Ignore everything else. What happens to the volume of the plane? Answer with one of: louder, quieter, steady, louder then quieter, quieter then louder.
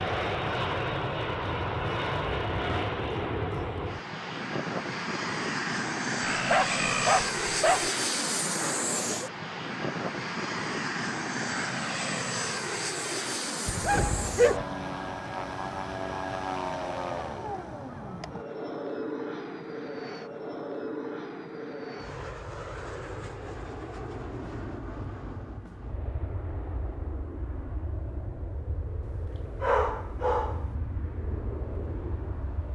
quieter.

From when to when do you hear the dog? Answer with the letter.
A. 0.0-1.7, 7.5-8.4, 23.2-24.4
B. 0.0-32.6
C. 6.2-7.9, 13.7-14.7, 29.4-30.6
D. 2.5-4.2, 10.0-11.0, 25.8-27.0
C.